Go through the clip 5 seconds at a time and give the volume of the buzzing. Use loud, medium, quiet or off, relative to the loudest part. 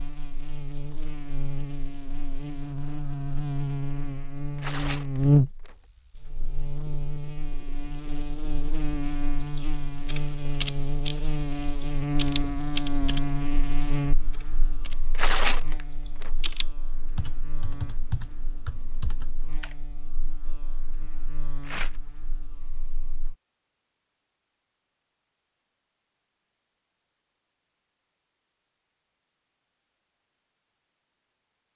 medium, loud, loud, quiet, quiet, off, off.